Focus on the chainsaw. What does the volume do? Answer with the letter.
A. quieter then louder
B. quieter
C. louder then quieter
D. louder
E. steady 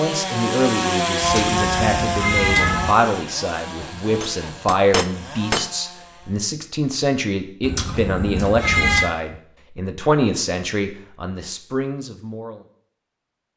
B.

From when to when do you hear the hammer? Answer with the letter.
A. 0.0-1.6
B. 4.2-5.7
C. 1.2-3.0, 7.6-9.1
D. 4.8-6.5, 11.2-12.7
B.